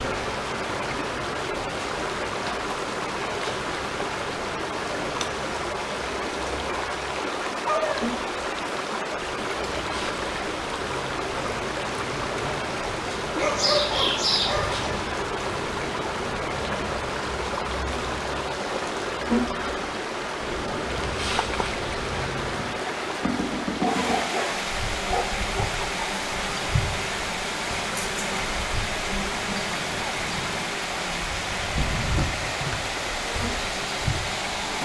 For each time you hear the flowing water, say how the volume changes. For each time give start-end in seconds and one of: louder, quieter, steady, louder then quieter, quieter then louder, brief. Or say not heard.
0.0-34.8 steady.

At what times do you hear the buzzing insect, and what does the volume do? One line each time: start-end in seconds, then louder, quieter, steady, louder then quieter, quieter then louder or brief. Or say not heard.
0.0-34.8 louder.